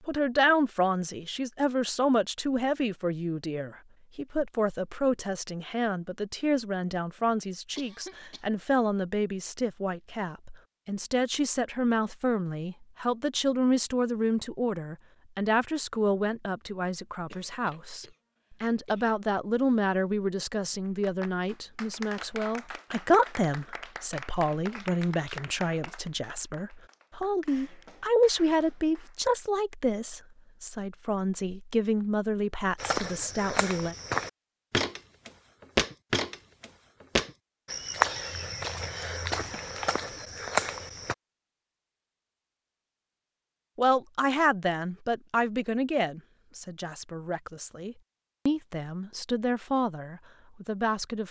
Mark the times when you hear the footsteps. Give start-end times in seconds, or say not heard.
32.8-41.1.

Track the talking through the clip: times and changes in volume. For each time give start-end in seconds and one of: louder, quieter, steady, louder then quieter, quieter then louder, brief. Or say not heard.
0.1-34.0 steady
43.8-51.2 quieter then louder.